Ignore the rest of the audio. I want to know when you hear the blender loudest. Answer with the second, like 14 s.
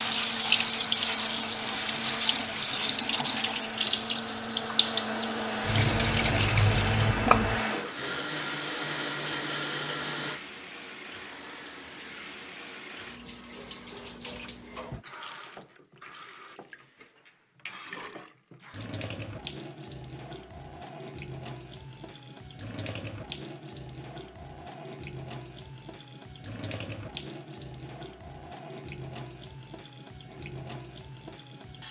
7 s.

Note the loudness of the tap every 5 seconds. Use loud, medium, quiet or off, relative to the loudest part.
loud, loud, quiet, quiet, quiet, quiet, quiet.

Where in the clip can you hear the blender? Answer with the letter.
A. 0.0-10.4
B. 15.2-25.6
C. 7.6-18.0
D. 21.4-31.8
A.